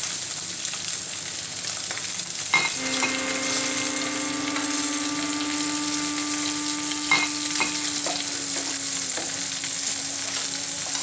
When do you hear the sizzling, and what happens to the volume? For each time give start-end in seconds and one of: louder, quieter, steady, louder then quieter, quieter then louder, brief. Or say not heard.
0.0-10.9 steady.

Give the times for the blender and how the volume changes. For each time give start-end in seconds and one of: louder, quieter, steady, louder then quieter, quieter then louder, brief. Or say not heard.
2.8-10.9 quieter.